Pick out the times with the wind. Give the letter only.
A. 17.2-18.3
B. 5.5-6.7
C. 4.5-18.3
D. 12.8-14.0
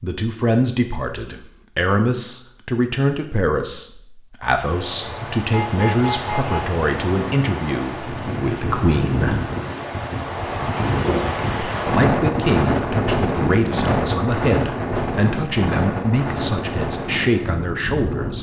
C.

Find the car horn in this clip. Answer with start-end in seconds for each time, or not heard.
5.5-6.7.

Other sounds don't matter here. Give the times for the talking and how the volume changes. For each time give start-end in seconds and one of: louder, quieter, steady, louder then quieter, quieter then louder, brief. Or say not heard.
0.0-9.4 steady
11.8-18.3 steady.